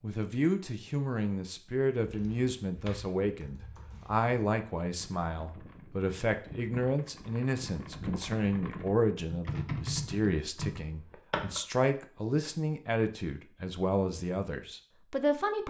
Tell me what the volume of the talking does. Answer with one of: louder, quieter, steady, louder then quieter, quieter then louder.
steady.